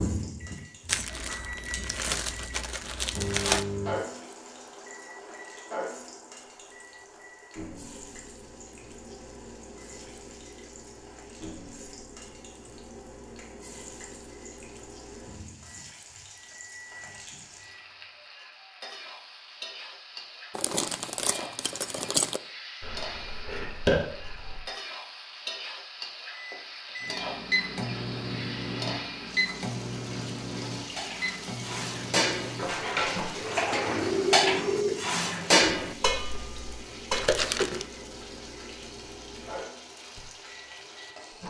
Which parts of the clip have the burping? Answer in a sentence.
You can hear the burping from 1.2 to 1.8 s, from 22.8 to 24.6 s and from 33.3 to 35.0 s.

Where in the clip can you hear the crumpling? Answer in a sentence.
You can hear the crumpling from 0.8 to 3.6 s, from 20.6 to 22.4 s and from 37.1 to 37.9 s.